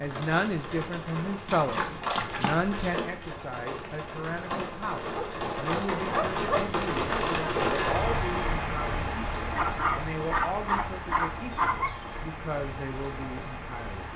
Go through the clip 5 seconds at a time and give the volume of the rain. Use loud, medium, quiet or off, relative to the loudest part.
medium, loud, medium.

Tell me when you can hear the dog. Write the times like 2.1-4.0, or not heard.
1.4-3.0, 5.1-7.7, 9.6-12.2.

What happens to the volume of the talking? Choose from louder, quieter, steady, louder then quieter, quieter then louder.
quieter.